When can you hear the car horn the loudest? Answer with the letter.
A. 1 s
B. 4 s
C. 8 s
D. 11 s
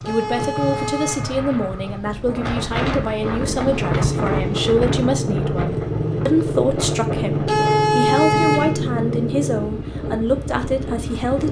C.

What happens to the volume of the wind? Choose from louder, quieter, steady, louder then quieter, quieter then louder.
louder then quieter.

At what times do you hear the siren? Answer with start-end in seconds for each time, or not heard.
not heard.